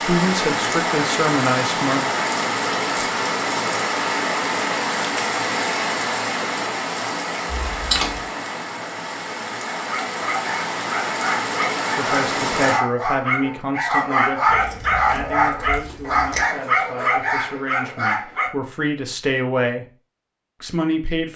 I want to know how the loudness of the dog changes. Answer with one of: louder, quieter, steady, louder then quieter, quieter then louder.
louder.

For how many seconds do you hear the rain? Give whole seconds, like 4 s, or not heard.
13 s.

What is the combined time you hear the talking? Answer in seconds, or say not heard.
11 s.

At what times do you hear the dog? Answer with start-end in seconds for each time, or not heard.
9.8-18.5.